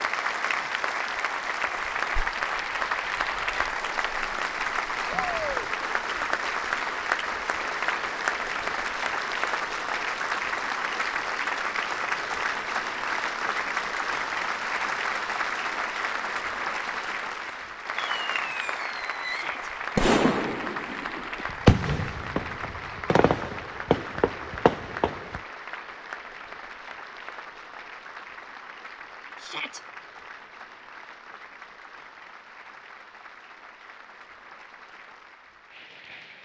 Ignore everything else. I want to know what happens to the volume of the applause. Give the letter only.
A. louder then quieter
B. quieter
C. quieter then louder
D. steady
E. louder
B.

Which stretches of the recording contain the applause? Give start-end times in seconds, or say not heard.
0.0-36.4.